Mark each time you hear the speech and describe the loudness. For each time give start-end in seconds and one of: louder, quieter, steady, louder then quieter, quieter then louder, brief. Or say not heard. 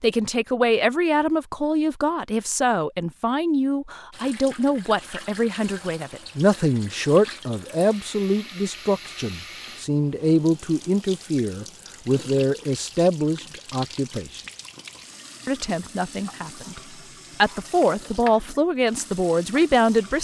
0.0-14.4 steady
15.4-16.8 brief
17.4-20.1 brief.